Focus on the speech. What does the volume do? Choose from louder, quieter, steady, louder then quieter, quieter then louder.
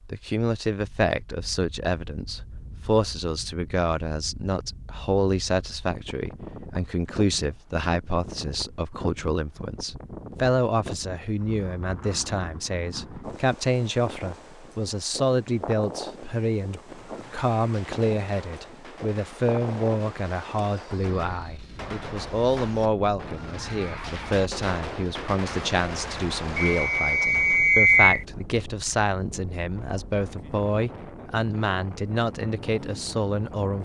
steady.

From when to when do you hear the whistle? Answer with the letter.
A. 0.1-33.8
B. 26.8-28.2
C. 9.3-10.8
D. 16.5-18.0
B.